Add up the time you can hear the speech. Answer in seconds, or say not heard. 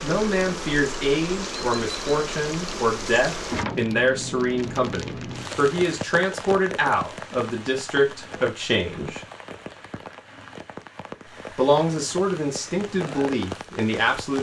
12 s.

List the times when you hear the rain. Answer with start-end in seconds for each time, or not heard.
0.0-14.3.